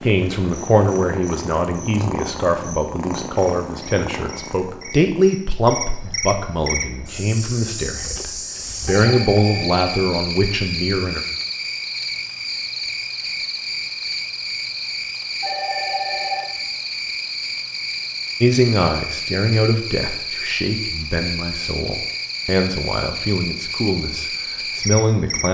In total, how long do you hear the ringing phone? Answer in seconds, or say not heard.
2 s.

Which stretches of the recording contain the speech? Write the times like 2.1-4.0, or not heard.
0.0-11.2, 18.4-25.4.